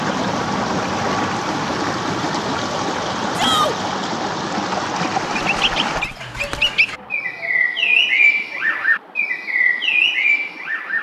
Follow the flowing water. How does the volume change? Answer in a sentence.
The loudness of the flowing water goes down.